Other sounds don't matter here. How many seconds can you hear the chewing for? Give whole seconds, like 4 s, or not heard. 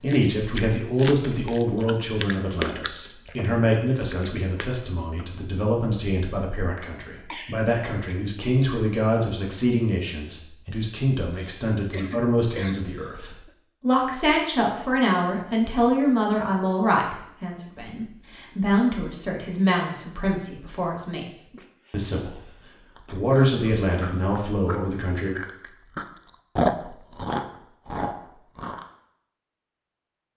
11 s.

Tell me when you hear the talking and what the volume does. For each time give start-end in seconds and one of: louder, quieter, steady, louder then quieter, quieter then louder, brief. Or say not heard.
0.0-25.4 steady.